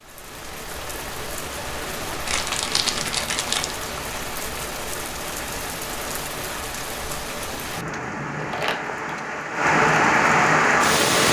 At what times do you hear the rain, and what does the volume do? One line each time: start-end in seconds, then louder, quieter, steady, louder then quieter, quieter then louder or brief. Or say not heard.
0.0-11.2 louder.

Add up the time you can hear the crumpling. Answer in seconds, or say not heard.
2 s.